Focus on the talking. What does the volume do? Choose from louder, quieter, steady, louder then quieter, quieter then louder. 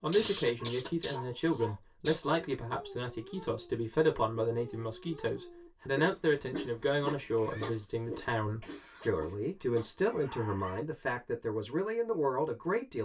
steady.